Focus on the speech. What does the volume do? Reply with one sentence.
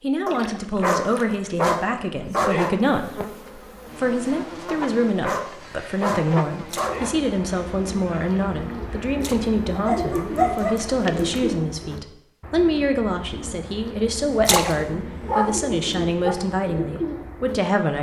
The volume of the speech stays about the same.